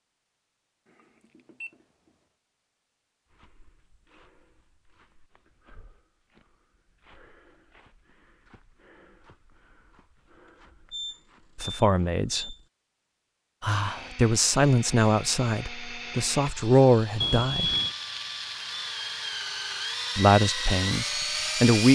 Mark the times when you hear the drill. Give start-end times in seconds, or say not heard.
13.7-21.9.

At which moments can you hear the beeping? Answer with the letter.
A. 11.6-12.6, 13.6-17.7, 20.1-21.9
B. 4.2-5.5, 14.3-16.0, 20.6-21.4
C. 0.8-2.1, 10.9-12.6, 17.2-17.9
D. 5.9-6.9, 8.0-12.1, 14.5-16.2
C.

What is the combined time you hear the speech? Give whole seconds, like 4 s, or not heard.
7 s.